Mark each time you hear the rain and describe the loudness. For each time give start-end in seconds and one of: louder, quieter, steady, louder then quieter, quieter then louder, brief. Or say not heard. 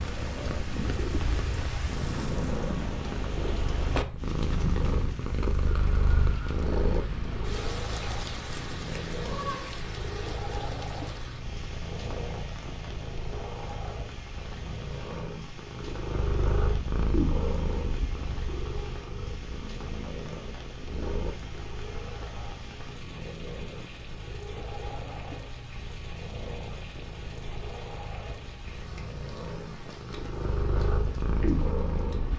0.0-32.3 quieter.